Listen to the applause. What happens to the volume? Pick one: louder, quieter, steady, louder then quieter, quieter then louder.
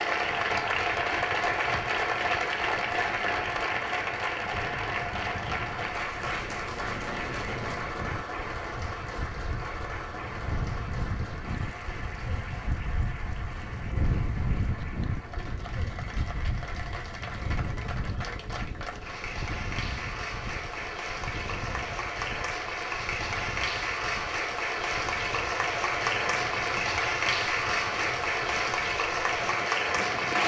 quieter then louder.